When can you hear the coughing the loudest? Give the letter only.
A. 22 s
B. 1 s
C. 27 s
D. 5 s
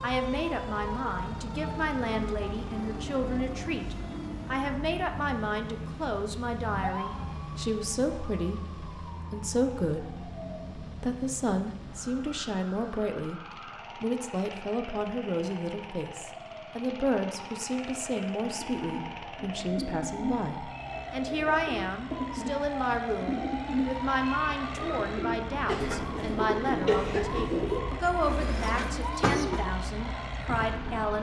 C.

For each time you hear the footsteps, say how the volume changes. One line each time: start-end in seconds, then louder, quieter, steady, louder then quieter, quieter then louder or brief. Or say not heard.
not heard.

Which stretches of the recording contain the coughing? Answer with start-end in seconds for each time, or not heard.
25.6-27.4.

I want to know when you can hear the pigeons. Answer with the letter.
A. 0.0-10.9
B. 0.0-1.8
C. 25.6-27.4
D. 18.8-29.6
D.